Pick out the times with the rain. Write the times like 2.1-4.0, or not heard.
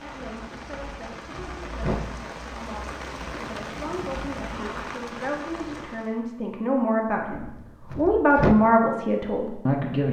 0.0-6.2.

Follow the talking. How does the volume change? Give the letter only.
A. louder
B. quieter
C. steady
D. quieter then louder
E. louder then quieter
A.